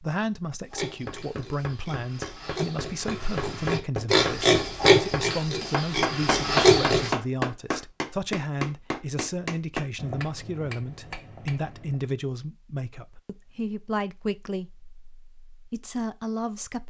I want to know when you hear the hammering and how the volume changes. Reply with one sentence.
The hammering can be heard from 1.1 to 12.1 s, getting louder then quieter.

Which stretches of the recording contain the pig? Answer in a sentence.
The pig can be heard from 0.7 to 7.1 s.